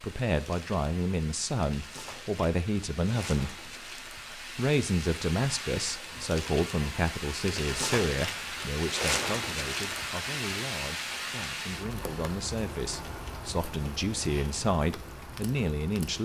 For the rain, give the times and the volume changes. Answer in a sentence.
You can hear the rain from 0.0 to 16.1 s, getting louder then quieter.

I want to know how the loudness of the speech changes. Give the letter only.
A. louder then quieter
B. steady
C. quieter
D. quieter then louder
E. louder
D.